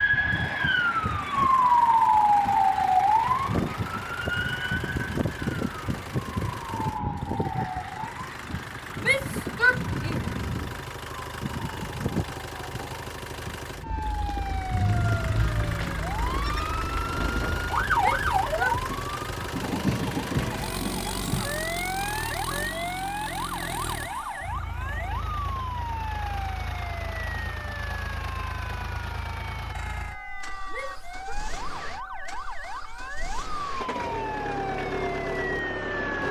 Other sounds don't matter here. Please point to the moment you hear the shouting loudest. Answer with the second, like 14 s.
10 s.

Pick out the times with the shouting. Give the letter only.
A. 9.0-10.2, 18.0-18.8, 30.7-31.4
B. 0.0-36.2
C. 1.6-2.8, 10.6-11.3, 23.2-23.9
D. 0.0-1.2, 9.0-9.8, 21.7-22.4
A.